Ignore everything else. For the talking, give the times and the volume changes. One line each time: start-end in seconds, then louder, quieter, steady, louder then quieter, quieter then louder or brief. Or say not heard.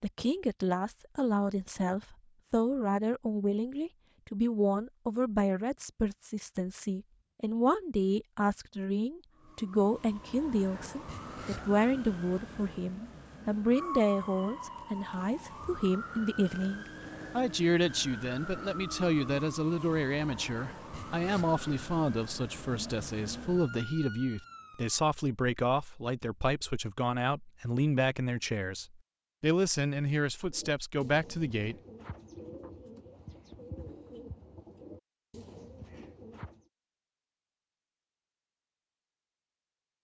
0.0-31.8 steady.